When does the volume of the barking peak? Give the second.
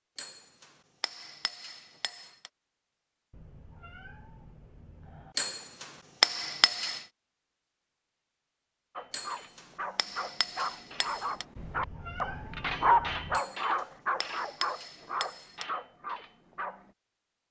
13 s.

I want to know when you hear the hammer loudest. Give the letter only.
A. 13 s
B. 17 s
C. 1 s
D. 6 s
D.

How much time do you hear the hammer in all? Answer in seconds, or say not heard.
9 s.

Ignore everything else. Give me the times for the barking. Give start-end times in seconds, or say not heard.
8.9-16.9.